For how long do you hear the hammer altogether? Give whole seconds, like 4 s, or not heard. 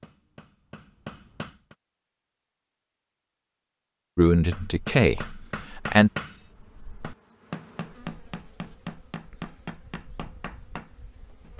9 s.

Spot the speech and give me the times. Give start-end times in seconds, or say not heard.
4.2-6.1.